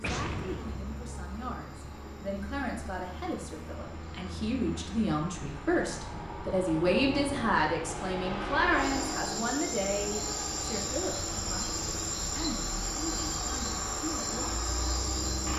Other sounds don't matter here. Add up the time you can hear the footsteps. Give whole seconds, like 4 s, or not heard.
not heard.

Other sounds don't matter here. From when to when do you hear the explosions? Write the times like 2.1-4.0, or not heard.
0.0-1.0.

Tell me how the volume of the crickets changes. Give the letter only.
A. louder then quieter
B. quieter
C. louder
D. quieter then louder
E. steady
C.